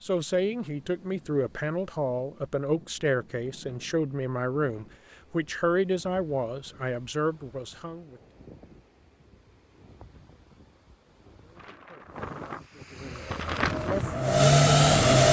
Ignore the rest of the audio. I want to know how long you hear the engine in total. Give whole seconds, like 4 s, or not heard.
2 s.